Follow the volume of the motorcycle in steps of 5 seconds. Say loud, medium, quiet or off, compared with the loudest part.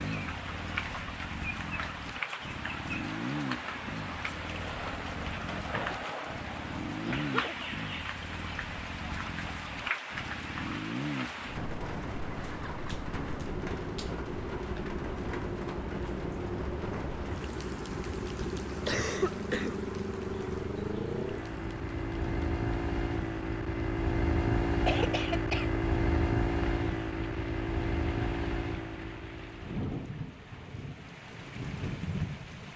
medium, medium, medium, medium, loud, loud, off.